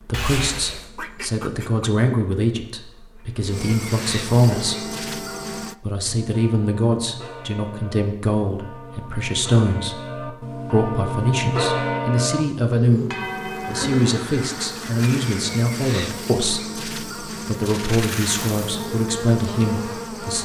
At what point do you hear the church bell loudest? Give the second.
12 s.